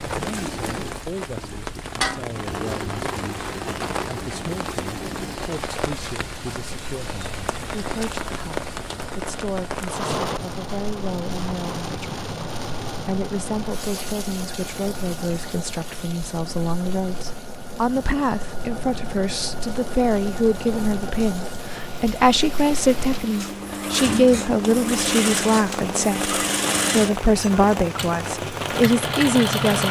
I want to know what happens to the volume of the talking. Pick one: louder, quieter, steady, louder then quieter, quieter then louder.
louder.